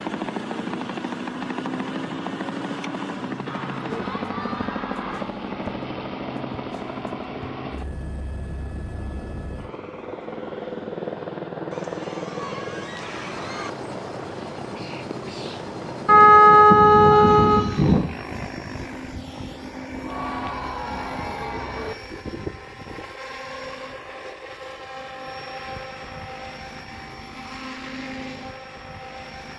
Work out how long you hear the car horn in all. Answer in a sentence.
The car horn can be heard for 2 seconds in total.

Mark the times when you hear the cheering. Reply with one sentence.
The cheering can be heard from 3.5 to 5.3 s, from 11.7 to 13.7 s and from 19.9 to 21.9 s.